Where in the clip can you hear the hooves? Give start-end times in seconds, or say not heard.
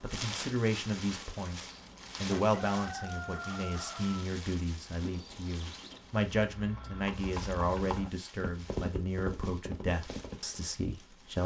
5.0-10.6.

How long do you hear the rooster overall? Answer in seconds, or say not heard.
2 s.